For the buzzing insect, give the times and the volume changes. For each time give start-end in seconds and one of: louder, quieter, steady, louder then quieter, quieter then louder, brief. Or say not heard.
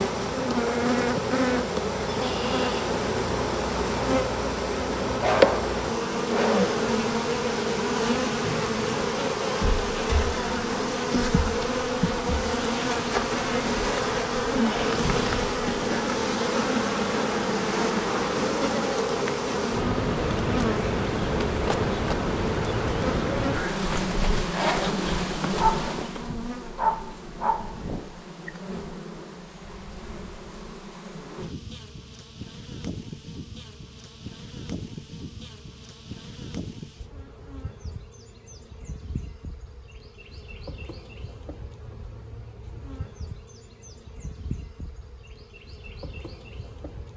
0.0-47.1 quieter.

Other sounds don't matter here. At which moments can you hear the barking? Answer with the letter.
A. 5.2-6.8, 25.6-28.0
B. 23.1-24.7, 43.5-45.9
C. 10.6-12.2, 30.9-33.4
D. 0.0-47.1
A.